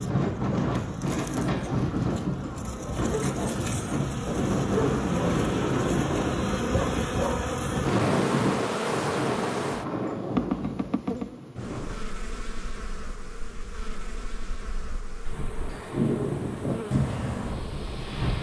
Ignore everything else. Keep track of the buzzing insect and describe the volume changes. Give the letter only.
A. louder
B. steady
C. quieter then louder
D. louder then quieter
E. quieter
D.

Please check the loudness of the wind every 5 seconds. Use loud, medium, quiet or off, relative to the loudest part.
loud, loud, medium, loud.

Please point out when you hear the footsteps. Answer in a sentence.
You can't hear the footsteps here.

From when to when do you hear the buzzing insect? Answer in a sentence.
You can hear the buzzing insect from 0.0 to 18.3 s.